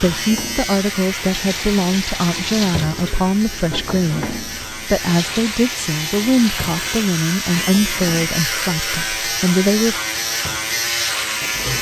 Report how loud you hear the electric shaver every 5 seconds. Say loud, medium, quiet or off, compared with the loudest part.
medium, loud, loud.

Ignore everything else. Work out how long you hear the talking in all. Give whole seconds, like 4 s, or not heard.
10 s.